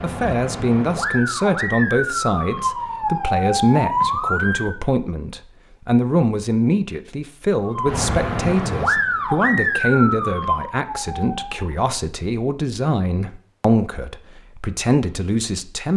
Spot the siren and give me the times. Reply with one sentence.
You can hear the siren from 0.0 to 4.8 s and from 7.7 to 11.7 s.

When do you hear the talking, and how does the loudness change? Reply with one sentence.
You can hear the talking from 0.0 to 15.9 s, at a steady volume.